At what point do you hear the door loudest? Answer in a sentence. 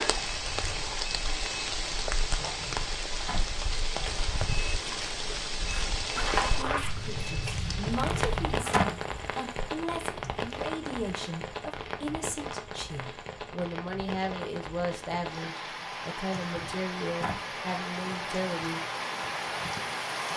The loudest moment of the door is at 9 seconds.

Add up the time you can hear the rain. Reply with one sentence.
You can hear the rain for 20 seconds altogether.